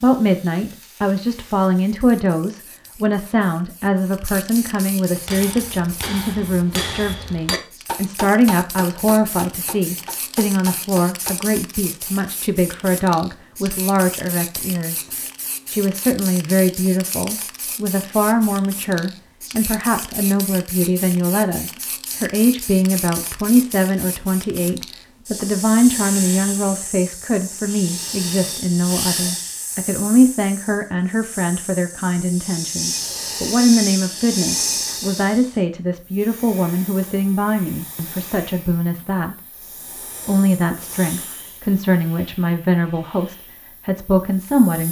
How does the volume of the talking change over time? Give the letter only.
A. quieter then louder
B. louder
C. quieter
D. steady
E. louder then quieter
D.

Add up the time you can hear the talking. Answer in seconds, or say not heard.
43 s.